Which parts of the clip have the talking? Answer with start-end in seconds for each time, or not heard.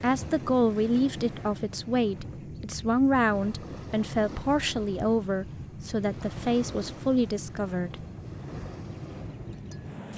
0.0-8.1.